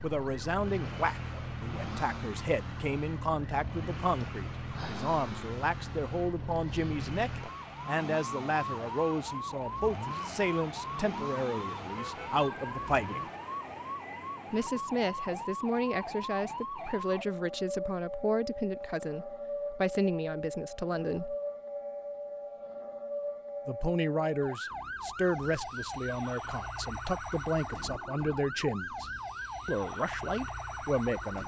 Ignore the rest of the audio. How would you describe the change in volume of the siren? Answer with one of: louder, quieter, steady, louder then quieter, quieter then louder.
steady.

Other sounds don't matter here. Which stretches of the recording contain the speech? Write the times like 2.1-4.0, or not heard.
0.0-13.2, 14.5-21.4, 23.6-31.4.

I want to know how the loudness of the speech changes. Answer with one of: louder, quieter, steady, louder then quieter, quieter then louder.
steady.